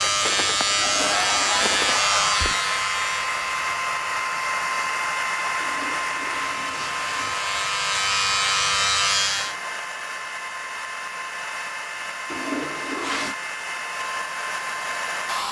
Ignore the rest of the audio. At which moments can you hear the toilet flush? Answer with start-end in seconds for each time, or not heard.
0.8-1.6, 5.6-7.4, 12.3-13.3.